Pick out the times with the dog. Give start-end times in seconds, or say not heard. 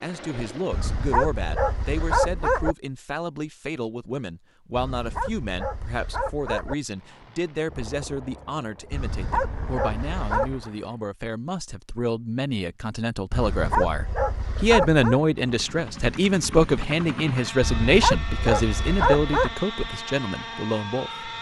0.7-2.8, 4.8-6.8, 8.9-10.7, 13.3-15.2, 17.6-19.6.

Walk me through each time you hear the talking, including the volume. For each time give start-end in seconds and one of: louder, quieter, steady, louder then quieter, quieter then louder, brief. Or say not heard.
0.0-21.2 louder.